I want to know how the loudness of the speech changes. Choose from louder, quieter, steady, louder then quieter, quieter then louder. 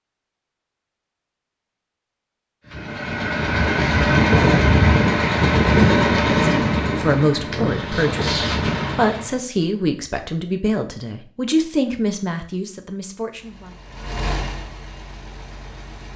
quieter.